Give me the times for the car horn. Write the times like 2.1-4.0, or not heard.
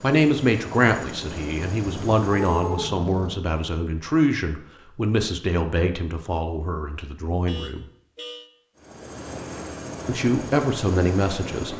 1.9-3.4, 7.5-8.5.